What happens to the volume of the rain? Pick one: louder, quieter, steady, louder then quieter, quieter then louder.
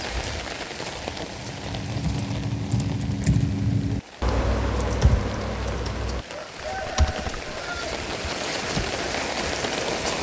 quieter then louder.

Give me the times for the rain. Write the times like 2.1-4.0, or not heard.
0.0-10.1.